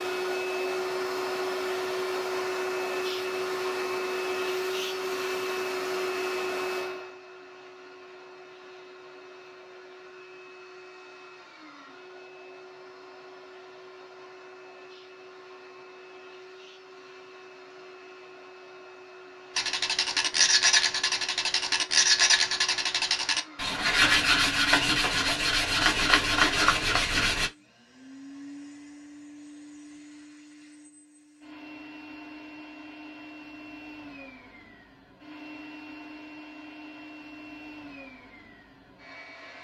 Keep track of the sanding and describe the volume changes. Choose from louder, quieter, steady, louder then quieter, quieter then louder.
steady.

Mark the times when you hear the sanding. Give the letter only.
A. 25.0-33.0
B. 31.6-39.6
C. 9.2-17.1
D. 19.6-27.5
D.